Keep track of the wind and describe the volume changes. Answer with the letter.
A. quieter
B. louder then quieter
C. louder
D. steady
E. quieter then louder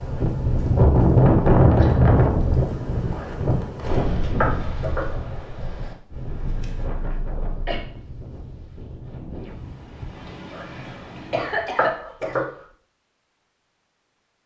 A.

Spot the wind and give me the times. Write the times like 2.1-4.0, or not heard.
0.0-11.8.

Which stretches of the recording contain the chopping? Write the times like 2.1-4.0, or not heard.
3.1-5.0, 10.5-12.4.